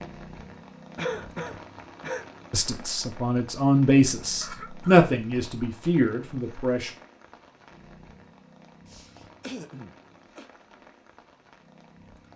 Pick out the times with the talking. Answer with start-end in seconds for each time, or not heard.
2.5-6.9.